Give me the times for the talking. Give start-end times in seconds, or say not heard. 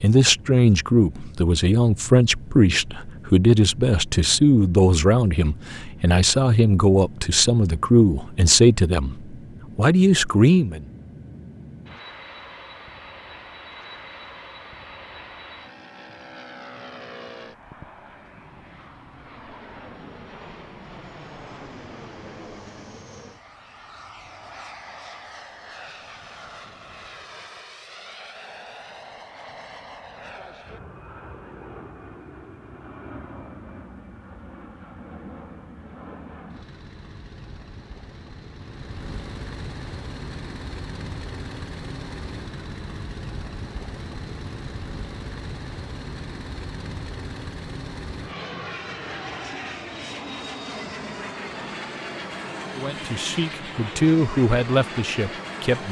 0.0-10.8, 52.7-55.8.